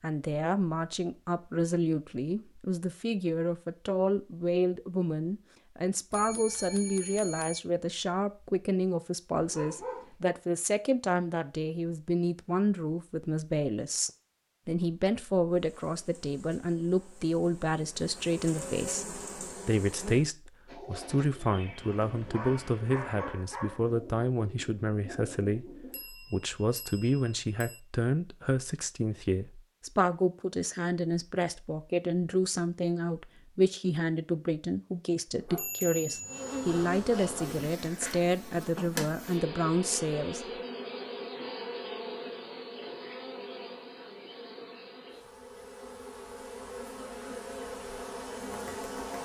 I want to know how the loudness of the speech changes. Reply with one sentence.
The loudness of the speech stays about the same.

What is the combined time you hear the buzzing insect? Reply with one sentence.
You can hear the buzzing insect for 18 seconds altogether.